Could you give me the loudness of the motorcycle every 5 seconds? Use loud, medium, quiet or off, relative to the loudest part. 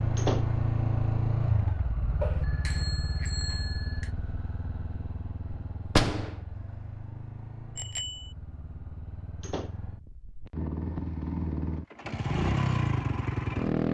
loud, quiet, loud.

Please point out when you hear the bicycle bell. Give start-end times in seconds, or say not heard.
2.2-4.1, 7.8-8.3.